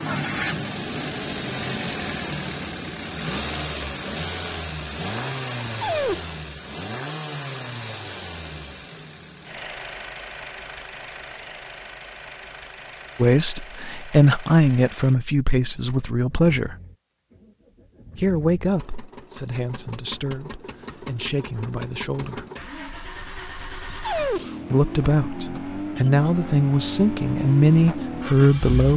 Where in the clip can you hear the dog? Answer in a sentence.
You can hear the dog from 5.6 to 6.5 s and from 23.8 to 24.6 s.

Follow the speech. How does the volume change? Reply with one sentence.
The volume of the speech goes down, then up.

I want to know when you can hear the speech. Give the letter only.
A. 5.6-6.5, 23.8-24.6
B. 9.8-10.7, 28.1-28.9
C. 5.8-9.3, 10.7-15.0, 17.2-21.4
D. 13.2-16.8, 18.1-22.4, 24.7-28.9
D.